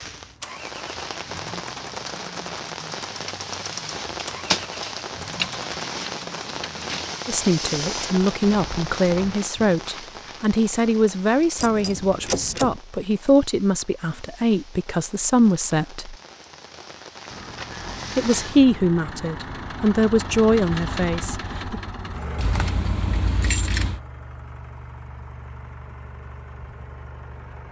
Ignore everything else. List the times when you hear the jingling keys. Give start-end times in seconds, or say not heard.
5.3-7.0, 11.6-12.8, 22.4-24.0.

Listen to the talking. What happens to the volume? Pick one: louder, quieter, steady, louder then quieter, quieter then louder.
steady.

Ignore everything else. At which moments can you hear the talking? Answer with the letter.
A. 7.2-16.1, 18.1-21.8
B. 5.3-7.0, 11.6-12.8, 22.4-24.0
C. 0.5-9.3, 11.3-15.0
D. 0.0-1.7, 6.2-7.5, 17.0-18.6
A.